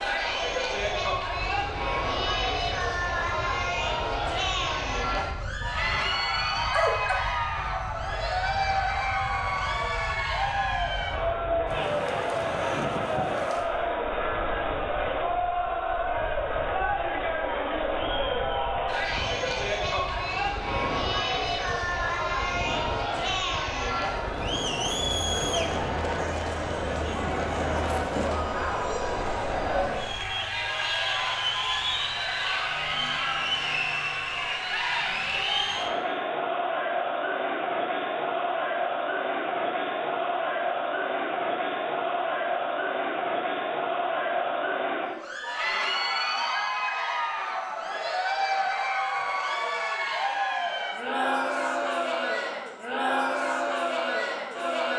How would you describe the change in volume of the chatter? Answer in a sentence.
The volume of the chatter stays about the same.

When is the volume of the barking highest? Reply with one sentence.
The loudest moment of the barking is at 7 seconds.